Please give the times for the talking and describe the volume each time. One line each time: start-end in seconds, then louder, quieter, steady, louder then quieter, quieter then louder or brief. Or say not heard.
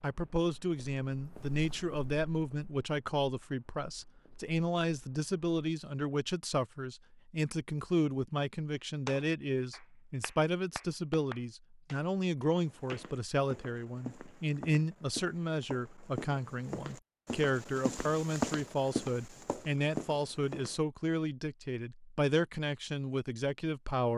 0.0-24.1 steady.